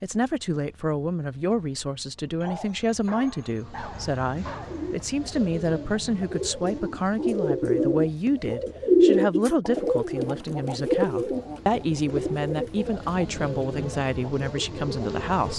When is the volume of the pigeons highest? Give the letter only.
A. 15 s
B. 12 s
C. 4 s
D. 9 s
D.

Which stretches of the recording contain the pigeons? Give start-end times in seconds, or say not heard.
4.6-15.5.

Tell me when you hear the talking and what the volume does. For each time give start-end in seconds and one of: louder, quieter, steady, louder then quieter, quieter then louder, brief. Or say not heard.
0.0-15.5 steady.